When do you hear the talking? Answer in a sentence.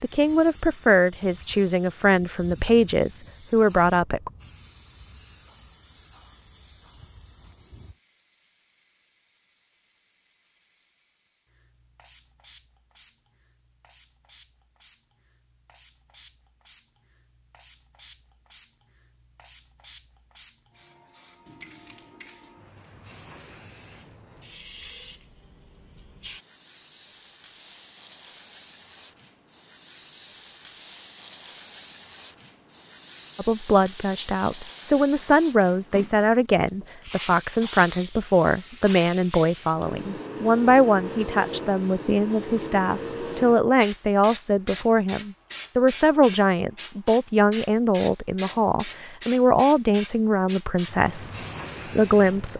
You can hear the talking from 0.0 to 4.3 s, from 33.4 to 51.4 s and from 52.0 to 52.5 s.